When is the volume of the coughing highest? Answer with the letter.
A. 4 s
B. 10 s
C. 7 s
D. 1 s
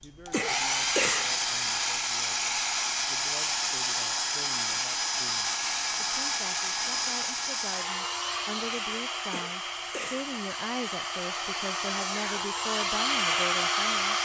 D.